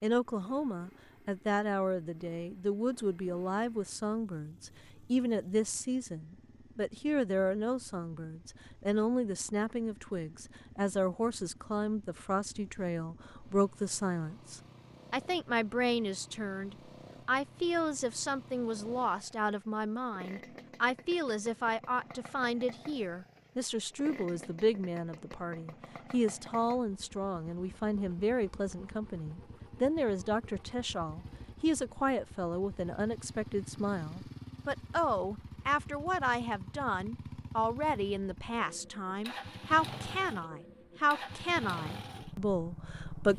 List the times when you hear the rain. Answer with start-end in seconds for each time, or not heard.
not heard.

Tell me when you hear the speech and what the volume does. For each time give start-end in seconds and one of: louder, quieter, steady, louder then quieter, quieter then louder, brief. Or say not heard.
0.0-43.3 steady.